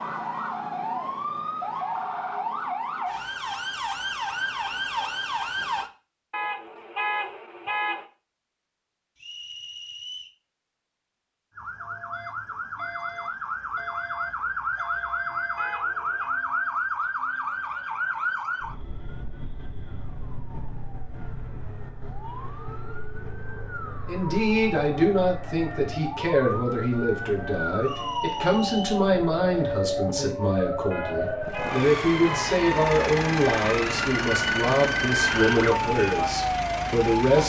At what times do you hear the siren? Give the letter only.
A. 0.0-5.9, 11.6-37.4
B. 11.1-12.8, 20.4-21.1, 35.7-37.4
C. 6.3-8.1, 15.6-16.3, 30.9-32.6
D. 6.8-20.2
A.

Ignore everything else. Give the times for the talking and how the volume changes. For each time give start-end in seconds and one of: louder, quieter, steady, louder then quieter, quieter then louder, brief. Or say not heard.
24.1-37.4 steady.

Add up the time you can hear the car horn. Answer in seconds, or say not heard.
4 s.